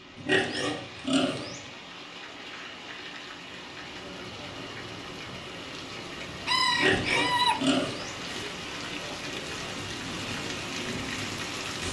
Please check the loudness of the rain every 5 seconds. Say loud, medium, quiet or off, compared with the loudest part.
medium, loud, loud.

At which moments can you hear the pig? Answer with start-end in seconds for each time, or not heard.
0.1-1.6, 6.7-8.2.